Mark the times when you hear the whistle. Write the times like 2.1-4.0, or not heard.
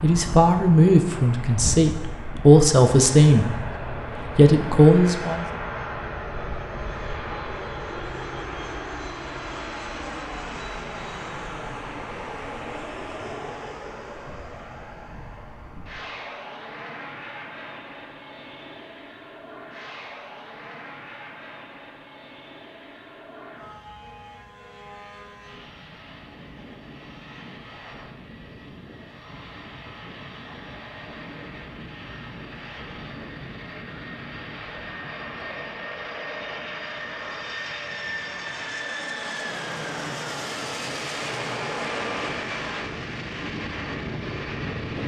not heard.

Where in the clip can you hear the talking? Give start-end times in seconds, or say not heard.
0.0-5.5.